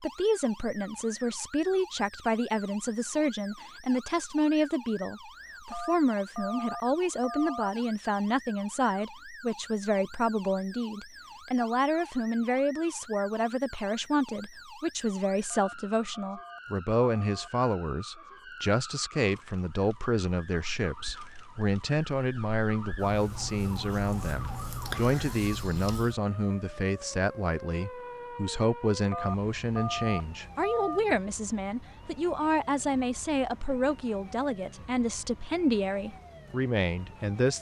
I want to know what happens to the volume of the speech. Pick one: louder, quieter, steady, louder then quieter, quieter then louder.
steady.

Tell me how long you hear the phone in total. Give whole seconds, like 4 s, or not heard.
6 s.